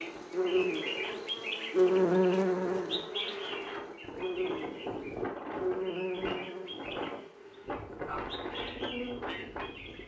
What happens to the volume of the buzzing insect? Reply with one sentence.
The volume of the buzzing insect goes down.